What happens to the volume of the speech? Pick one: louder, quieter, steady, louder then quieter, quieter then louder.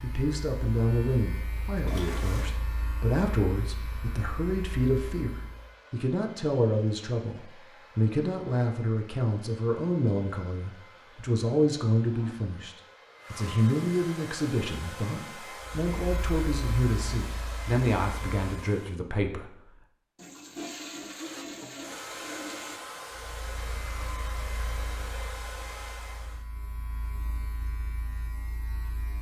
steady.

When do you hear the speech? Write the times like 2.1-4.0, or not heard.
0.0-19.6.